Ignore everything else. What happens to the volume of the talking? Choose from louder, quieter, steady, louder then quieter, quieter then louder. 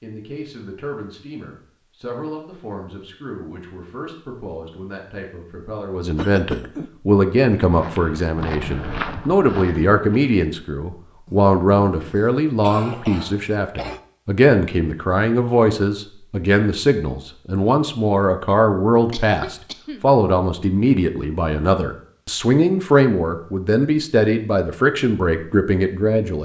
louder.